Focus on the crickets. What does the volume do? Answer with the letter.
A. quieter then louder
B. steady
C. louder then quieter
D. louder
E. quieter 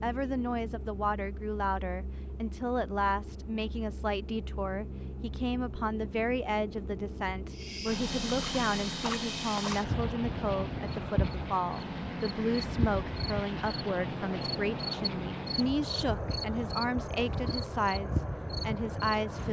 B.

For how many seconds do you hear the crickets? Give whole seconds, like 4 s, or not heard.
12 s.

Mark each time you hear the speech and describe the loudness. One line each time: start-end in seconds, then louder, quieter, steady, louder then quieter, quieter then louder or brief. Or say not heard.
0.0-19.4 steady.